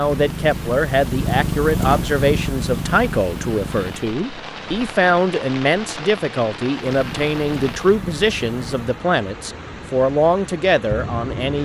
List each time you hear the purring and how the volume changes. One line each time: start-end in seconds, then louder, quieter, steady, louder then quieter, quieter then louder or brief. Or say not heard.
0.0-4.2 louder then quieter
6.9-8.8 brief.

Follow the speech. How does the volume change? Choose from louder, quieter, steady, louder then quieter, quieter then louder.
steady.